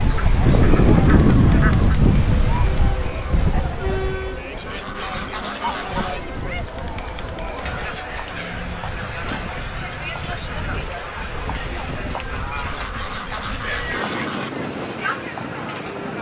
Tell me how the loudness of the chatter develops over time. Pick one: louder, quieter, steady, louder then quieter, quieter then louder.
steady.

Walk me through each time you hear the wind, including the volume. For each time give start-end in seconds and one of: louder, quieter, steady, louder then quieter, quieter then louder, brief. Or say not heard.
0.0-16.1 quieter then louder.